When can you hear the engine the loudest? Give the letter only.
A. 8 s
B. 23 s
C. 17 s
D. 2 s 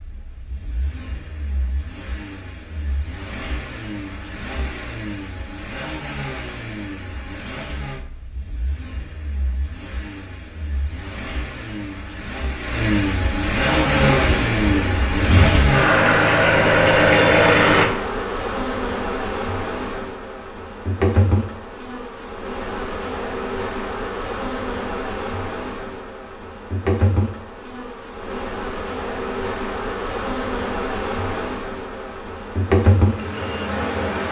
C.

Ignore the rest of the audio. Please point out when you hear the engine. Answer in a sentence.
The engine can be heard from 0.0 to 17.9 s.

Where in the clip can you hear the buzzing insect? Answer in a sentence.
The buzzing insect can be heard from 13.7 to 34.2 s.